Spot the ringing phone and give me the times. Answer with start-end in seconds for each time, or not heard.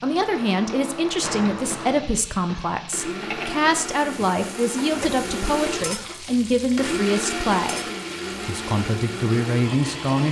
not heard.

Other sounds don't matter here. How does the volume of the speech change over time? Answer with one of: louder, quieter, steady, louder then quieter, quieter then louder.
steady.